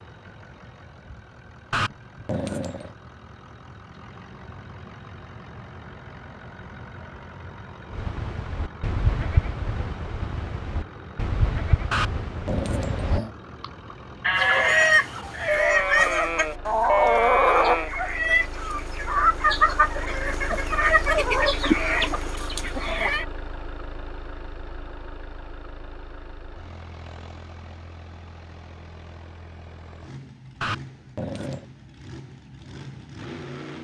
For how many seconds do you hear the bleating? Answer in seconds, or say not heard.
10 s.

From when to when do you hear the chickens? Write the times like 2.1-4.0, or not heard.
14.3-23.2.